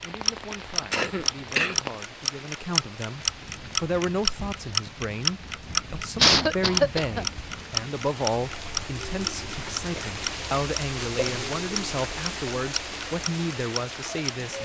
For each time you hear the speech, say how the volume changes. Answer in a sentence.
You can hear the speech from 0.0 to 14.5 s, getting louder.